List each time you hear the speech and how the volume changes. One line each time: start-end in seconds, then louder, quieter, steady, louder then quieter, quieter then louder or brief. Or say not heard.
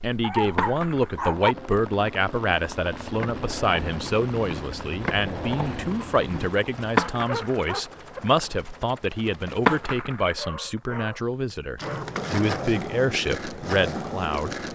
0.0-14.7 steady.